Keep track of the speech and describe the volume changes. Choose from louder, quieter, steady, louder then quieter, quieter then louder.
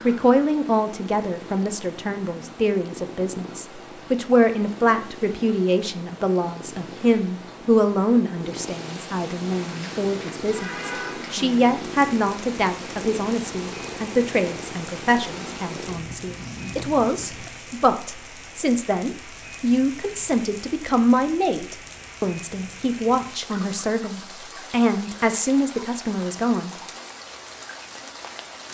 steady.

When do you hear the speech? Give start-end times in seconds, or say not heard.
0.0-26.7.